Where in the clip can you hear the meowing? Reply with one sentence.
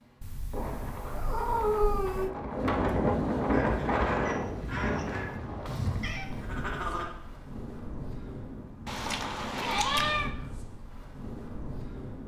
The meowing can be heard from 0.2 to 2.3 s, from 4.2 to 6.2 s and from 8.8 to 10.3 s.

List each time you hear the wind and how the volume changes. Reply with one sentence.
You can hear the wind from 0.0 to 12.2 s, getting louder then quieter.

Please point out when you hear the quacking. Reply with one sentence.
You can hear the quacking from 3.5 to 7.0 s.